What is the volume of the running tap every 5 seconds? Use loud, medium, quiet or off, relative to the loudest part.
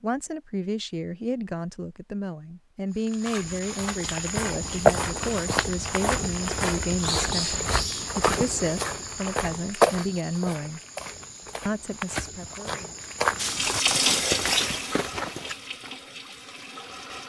off, off, loud, quiet.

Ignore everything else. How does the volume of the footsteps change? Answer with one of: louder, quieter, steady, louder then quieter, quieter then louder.
quieter then louder.